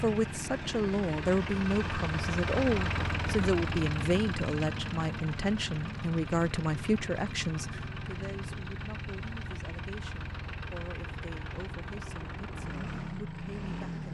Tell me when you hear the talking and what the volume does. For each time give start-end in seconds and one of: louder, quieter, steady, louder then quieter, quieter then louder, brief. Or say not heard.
0.0-14.0 quieter.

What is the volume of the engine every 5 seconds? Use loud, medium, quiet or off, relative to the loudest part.
loud, medium, medium.